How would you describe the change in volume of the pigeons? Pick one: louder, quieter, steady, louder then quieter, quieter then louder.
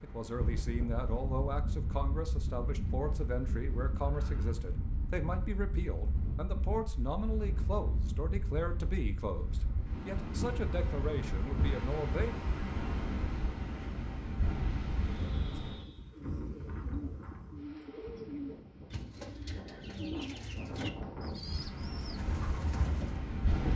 louder.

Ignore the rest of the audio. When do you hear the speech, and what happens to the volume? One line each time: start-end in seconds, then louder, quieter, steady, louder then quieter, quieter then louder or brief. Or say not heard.
0.0-12.3 steady.